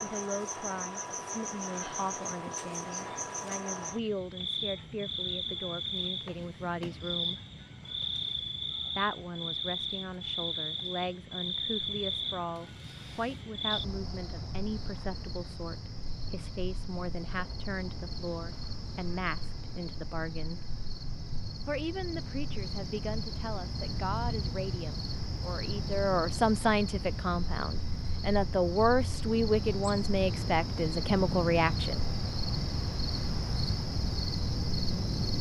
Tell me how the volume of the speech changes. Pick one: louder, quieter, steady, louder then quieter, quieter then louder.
louder.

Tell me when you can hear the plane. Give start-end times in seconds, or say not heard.
not heard.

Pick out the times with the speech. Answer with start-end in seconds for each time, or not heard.
0.0-7.4, 8.9-20.6, 21.6-32.0.